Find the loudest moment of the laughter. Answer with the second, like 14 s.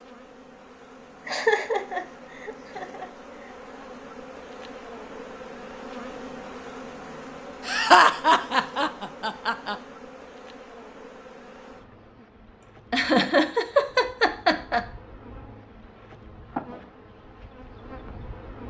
8 s.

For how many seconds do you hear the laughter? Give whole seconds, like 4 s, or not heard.
6 s.